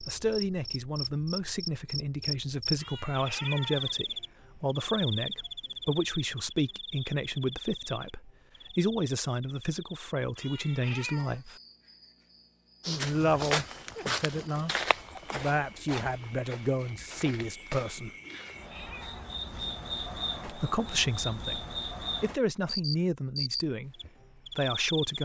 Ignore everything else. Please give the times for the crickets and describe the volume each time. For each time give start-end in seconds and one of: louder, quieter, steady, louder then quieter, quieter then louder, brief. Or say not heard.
0.0-25.2 quieter then louder.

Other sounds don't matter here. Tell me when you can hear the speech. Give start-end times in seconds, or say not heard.
0.1-11.6, 12.8-18.1, 20.4-23.9, 24.6-25.2.